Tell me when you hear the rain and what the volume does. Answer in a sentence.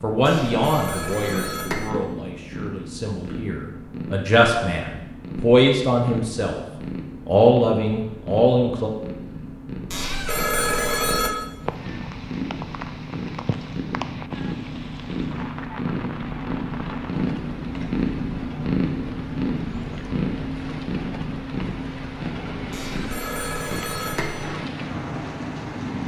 You can hear the rain from 11.6 to 26.0 s, getting quieter then louder.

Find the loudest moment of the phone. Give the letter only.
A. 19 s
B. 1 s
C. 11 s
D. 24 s
C.